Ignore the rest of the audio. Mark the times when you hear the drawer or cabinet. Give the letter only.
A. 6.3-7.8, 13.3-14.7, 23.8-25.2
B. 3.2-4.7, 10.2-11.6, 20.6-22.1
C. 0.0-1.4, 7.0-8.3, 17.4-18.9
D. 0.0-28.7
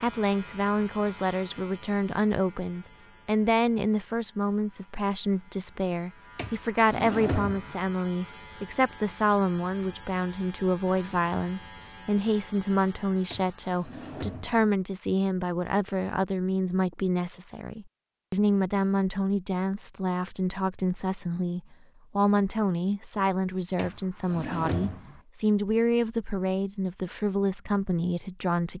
A.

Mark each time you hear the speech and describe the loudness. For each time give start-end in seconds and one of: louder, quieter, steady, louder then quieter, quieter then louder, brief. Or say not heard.
0.0-28.7 steady.